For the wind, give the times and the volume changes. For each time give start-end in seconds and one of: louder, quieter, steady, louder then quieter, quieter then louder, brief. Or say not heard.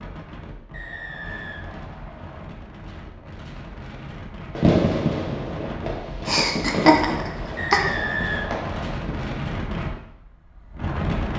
0.0-11.3 louder.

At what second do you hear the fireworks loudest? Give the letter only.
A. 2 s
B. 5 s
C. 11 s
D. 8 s
B.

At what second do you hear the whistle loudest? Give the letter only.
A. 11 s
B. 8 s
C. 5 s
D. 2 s
B.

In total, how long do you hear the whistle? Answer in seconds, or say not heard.
3 s.